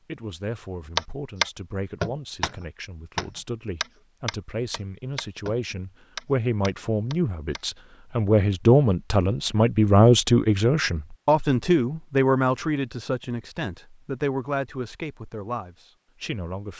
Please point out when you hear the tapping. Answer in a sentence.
You can hear the tapping from 0.9 to 7.6 s.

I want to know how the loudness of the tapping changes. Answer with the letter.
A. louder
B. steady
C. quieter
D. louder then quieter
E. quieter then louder
C.